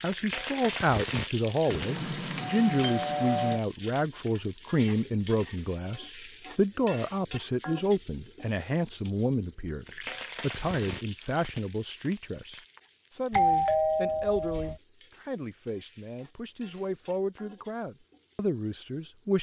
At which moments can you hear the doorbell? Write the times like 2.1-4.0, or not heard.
1.6-3.6, 13.3-14.8.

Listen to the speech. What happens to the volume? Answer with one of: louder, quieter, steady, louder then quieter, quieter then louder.
quieter.